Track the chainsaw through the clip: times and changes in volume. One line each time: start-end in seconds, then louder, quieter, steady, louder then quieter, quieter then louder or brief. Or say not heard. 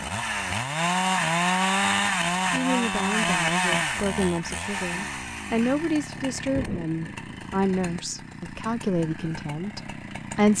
0.0-10.5 quieter.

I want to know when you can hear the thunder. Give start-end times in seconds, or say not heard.
6.2-7.5.